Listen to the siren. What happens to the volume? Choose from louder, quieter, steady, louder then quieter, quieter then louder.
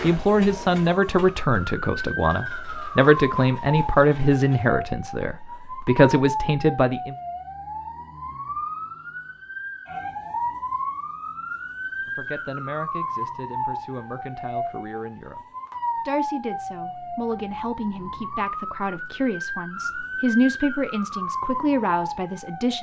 steady.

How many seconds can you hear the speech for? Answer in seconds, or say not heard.
18 s.